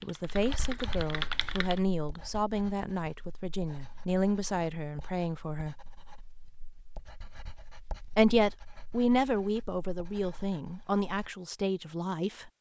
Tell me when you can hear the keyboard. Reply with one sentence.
The keyboard can be heard from 0.0 to 1.8 s.